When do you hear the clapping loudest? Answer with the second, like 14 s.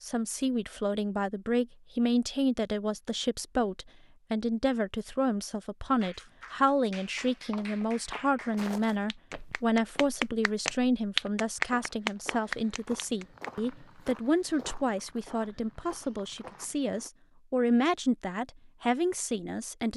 11 s.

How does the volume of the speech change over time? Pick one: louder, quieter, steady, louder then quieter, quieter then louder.
steady.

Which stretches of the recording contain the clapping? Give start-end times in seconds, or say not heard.
6.0-13.5.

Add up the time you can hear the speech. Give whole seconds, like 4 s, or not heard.
20 s.